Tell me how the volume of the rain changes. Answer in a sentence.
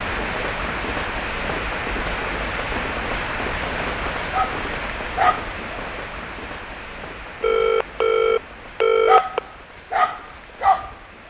The loudness of the rain goes down.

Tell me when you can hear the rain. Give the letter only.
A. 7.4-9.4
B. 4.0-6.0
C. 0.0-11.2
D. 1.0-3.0
C.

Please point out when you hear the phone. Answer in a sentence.
The phone can be heard from 7.4 to 9.4 s.